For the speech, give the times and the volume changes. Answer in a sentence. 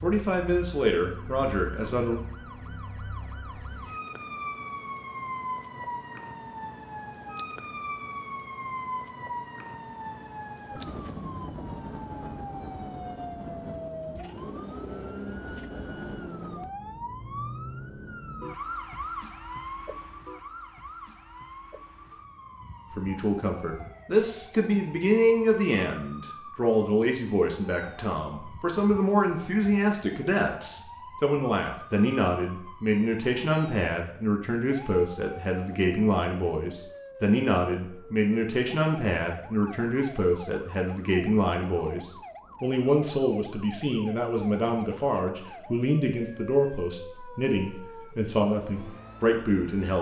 You can hear the speech briefly from 0.0 to 2.1 s; and from 22.9 to 49.9 s, at a steady volume.